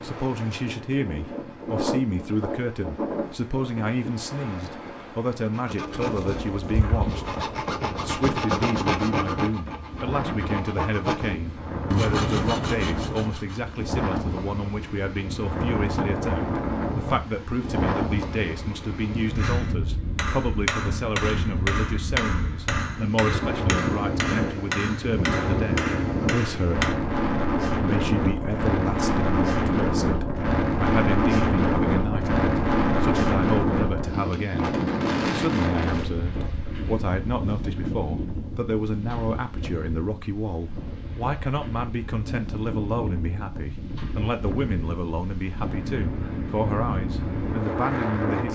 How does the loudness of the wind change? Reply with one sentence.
The loudness of the wind goes up, then down.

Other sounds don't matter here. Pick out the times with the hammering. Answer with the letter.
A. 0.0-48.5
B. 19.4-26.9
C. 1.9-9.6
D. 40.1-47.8
B.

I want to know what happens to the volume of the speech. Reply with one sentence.
The loudness of the speech stays about the same.